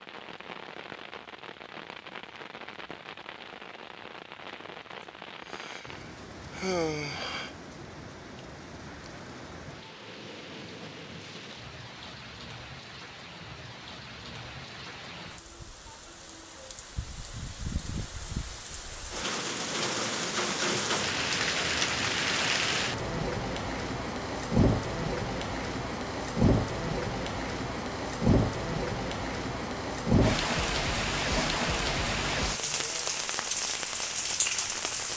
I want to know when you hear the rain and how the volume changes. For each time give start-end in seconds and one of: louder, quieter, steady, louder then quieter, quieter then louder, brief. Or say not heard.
0.0-35.1 louder.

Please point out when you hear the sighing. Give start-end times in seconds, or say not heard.
5.5-7.5.